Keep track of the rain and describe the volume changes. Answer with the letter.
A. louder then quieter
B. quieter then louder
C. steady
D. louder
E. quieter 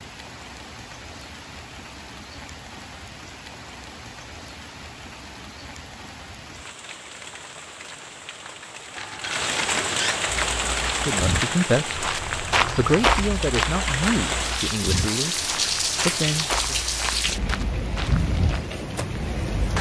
D.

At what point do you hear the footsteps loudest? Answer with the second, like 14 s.
13 s.